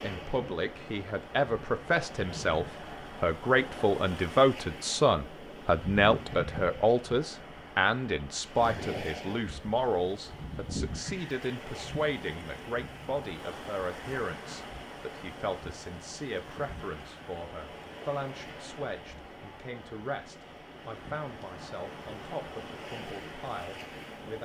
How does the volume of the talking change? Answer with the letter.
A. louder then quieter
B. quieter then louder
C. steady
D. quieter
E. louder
D.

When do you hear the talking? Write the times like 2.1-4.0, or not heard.
0.0-24.3.